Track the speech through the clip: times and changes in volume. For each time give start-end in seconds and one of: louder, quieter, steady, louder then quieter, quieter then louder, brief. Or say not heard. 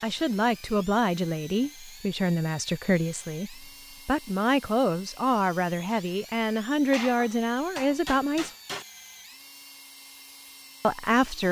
0.0-8.5 steady
10.8-11.4 brief.